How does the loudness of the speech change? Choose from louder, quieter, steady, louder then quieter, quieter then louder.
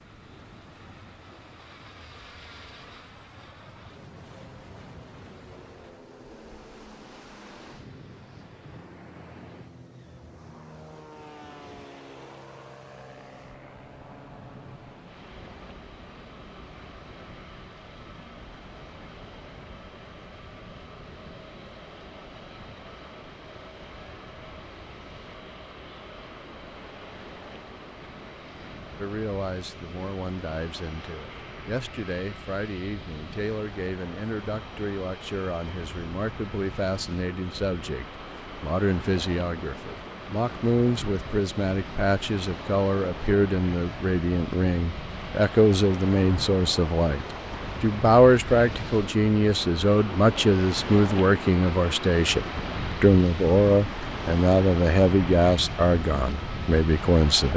louder.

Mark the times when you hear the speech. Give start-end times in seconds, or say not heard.
28.9-57.5.